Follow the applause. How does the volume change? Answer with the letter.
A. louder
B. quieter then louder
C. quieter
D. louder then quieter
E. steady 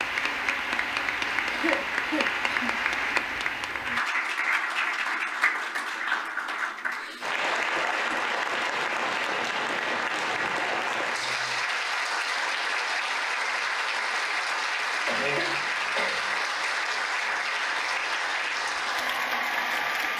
E.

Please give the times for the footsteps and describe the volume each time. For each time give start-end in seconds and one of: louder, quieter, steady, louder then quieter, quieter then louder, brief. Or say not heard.
not heard.